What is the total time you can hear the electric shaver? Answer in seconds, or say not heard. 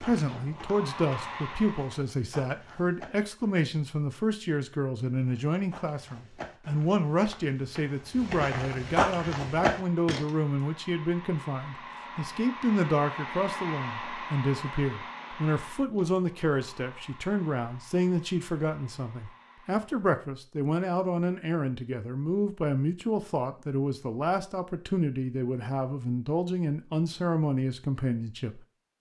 not heard.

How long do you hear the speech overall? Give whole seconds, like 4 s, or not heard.
29 s.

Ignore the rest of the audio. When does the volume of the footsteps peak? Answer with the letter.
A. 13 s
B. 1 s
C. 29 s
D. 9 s
D.